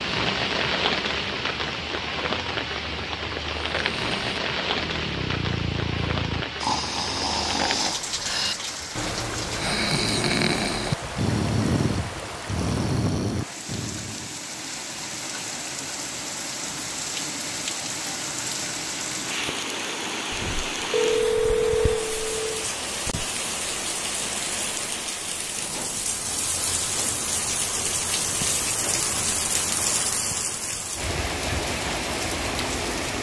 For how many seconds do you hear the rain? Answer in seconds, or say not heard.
33 s.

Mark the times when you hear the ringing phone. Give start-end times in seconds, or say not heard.
20.3-22.6.